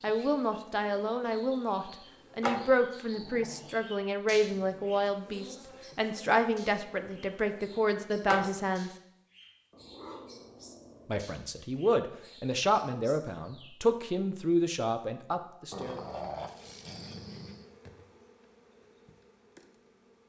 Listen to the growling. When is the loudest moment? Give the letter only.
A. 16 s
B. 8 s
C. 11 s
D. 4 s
A.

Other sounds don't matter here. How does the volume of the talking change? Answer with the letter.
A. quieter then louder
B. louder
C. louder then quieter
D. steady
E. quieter
D.